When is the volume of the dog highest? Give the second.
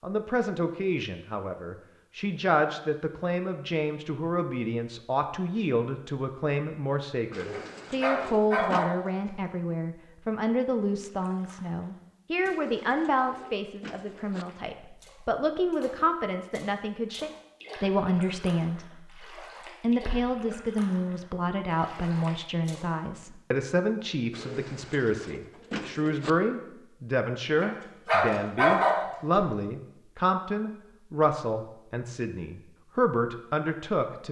29 s.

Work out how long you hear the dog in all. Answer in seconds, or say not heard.
4 s.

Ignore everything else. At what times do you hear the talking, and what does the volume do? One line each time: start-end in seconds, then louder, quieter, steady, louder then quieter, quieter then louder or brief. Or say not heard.
0.0-34.2 steady.